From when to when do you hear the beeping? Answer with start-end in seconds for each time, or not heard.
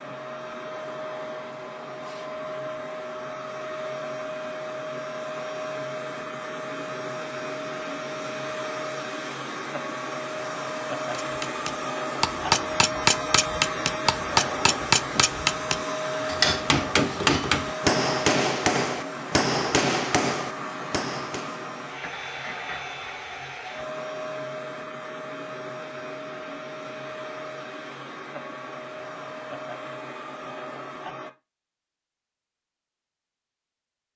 not heard.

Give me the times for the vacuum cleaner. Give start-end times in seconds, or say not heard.
0.0-31.3.